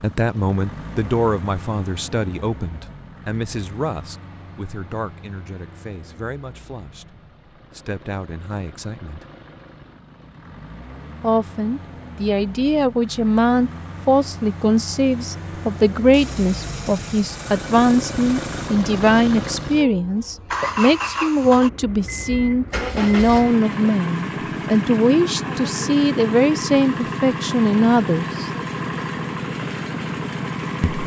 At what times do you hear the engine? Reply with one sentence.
You can hear the engine from 0.0 to 31.0 s.